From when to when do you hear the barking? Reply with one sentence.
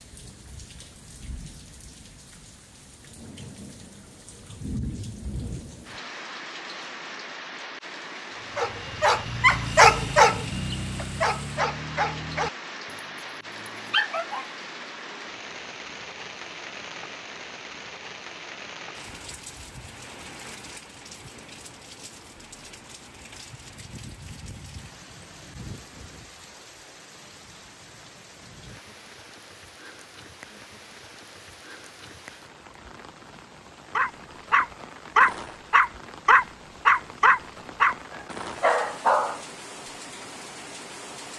You can hear the barking from 8.6 to 14.5 s and from 34.0 to 39.5 s.